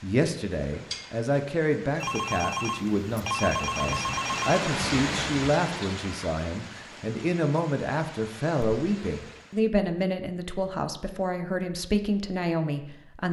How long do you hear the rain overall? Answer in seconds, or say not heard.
10 s.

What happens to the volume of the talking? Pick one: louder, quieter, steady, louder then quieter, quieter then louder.
steady.